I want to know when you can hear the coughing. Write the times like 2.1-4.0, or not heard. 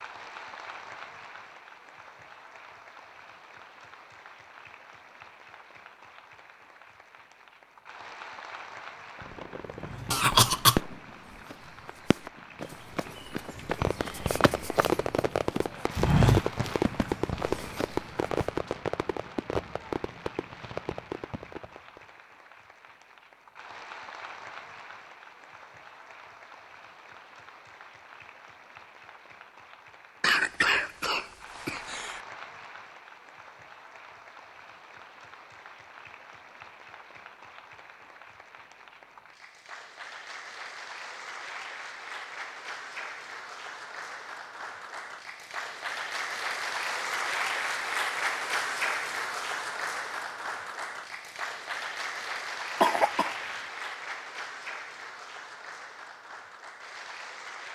10.1-10.8, 30.2-32.2, 52.8-53.6.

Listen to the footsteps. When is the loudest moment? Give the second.
16 s.